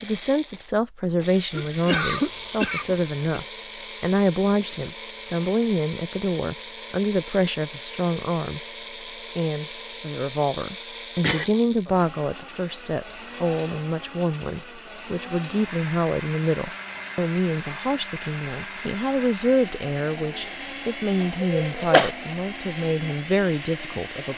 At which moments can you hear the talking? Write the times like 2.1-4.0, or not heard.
0.0-8.6, 9.3-24.3.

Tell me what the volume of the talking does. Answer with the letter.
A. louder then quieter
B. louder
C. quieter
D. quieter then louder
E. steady
E.